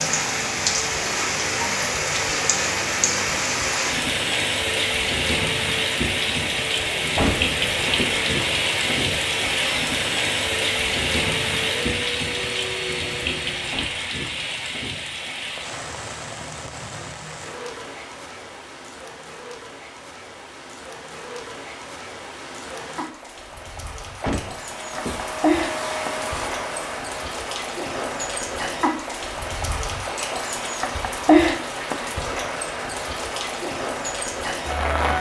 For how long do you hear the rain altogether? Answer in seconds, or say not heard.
35 s.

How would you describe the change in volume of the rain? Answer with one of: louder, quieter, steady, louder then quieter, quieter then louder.
quieter then louder.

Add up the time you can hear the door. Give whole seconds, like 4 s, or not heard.
3 s.